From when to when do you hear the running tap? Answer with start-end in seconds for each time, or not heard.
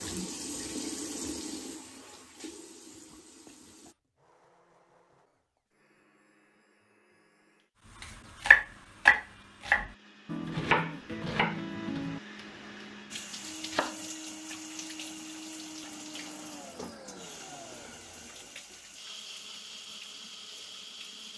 0.0-4.0, 13.1-21.3.